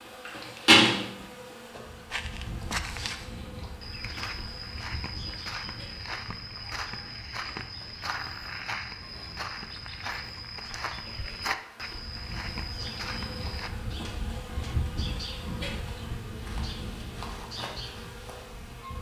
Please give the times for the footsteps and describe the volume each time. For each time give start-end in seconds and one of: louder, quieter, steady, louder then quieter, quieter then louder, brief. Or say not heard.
2.1-13.7 steady.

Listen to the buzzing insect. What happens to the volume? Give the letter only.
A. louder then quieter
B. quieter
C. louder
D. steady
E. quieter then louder
E.